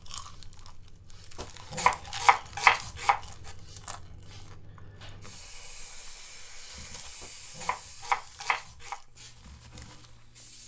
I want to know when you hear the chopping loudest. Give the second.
3 s.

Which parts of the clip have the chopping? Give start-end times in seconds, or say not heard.
1.4-3.5, 7.2-8.9.